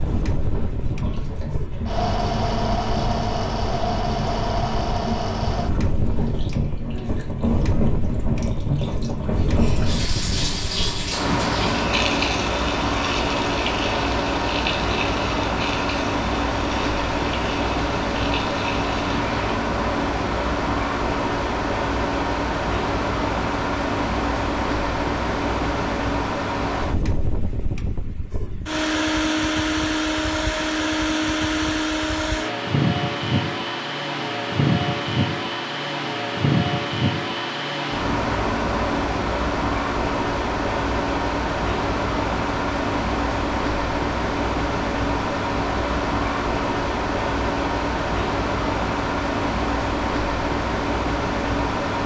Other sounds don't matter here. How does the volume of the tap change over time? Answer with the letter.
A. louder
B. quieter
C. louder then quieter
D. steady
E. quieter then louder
C.